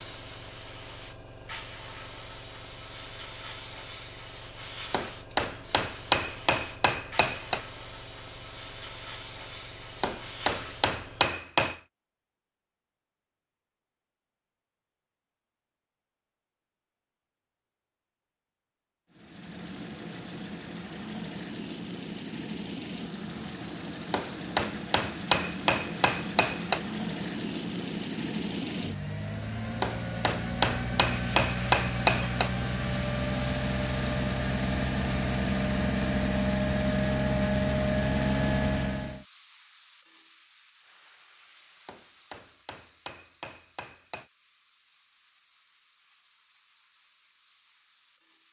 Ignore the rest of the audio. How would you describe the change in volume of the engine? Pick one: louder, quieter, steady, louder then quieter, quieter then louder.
louder.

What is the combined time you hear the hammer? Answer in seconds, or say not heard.
12 s.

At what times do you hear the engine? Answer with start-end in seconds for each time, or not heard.
19.1-39.2.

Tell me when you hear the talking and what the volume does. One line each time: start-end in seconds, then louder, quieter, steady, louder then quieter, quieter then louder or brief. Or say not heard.
not heard.